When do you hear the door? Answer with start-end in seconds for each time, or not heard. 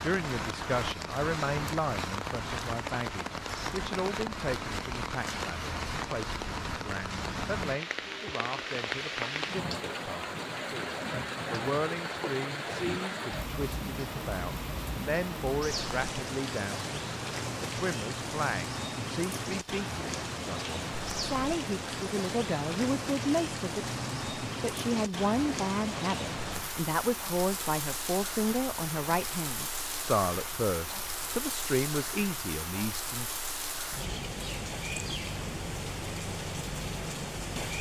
not heard.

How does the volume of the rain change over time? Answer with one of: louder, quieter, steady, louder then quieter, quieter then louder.
steady.